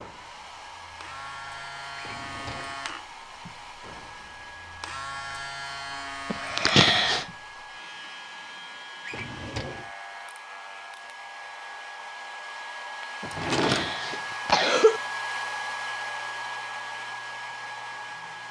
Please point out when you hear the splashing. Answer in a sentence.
The splashing can't be heard in this clip.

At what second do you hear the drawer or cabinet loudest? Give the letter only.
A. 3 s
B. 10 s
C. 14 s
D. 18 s
C.